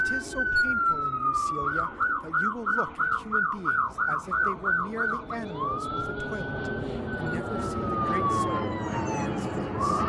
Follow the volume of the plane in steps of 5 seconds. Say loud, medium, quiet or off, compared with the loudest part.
quiet, loud.